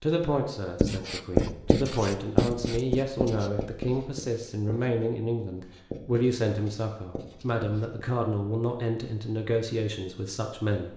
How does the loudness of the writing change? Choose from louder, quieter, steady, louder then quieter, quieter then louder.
quieter.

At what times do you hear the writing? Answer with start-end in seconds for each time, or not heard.
0.8-8.1.